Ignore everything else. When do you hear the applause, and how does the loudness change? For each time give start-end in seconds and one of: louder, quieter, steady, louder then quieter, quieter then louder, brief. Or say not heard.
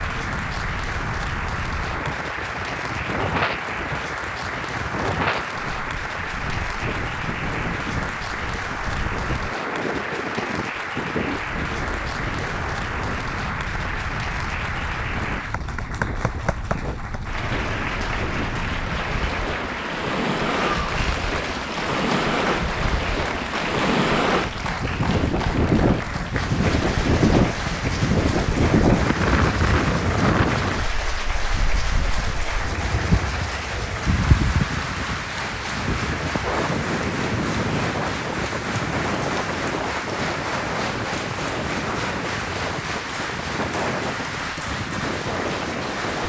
0.0-46.2 steady.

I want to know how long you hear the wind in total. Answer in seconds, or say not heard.
46 s.